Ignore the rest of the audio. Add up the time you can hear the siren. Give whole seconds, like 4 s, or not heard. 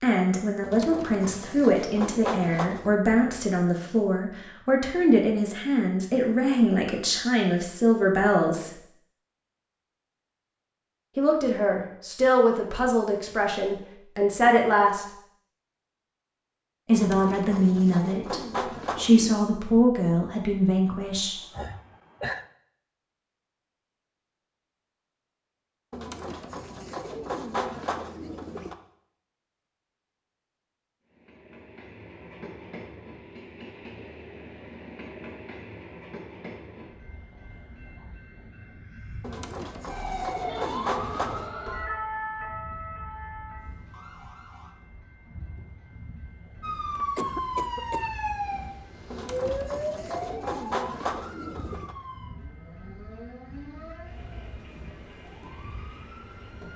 15 s.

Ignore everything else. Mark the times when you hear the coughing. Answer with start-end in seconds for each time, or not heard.
20.9-22.4, 47.0-48.1.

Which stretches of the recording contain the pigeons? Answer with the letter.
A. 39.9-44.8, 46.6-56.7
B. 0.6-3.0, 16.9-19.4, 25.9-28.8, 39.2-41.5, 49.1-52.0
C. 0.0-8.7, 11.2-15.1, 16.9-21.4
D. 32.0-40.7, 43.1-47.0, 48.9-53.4
B.